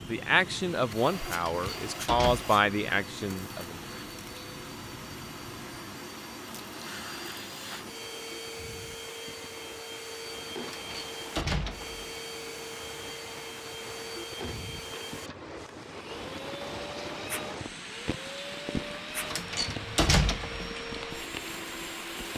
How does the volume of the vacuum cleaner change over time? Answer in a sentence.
The volume of the vacuum cleaner stays about the same.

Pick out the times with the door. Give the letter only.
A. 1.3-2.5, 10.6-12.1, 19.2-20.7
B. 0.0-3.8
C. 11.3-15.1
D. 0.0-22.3
A.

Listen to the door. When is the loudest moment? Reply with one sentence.
The loudest moment of the door is at 20 seconds.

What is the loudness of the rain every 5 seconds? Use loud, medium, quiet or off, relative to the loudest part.
medium, medium, medium, loud, loud.